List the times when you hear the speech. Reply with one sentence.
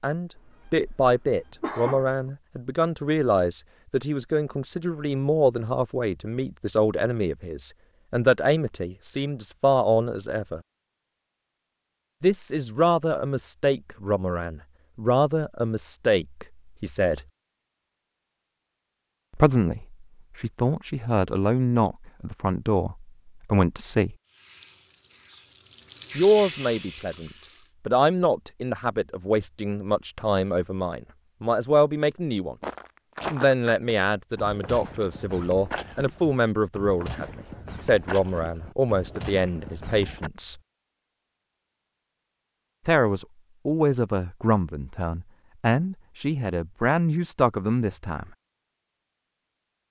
You can hear the speech from 0.0 to 10.6 s, from 12.2 to 17.2 s, from 19.4 to 24.1 s, from 26.1 to 32.5 s, from 33.3 to 40.6 s and from 42.9 to 48.2 s.